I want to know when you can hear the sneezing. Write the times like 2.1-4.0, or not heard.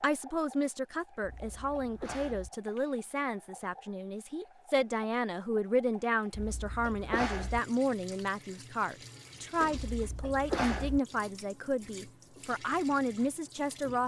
1.2-2.5, 6.3-7.6, 9.8-11.0.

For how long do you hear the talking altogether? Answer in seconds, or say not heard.
14 s.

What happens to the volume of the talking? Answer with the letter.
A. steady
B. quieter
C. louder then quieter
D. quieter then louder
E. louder
A.